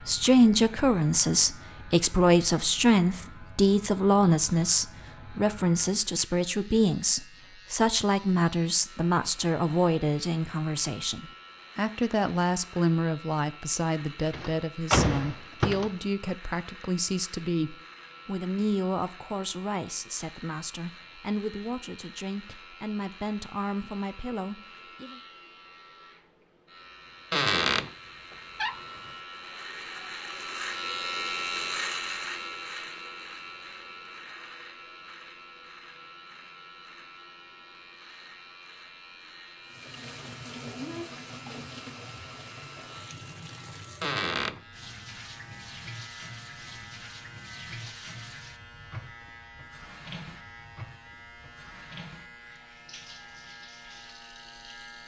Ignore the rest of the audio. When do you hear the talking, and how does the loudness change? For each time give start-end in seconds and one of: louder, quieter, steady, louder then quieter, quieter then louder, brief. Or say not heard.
0.1-25.2 quieter.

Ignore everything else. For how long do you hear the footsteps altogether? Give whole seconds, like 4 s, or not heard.
not heard.